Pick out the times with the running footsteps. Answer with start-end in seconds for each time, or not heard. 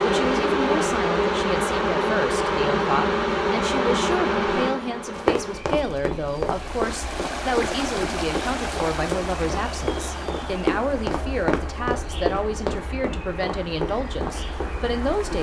5.2-14.7.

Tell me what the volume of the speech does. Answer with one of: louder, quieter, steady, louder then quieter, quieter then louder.
steady.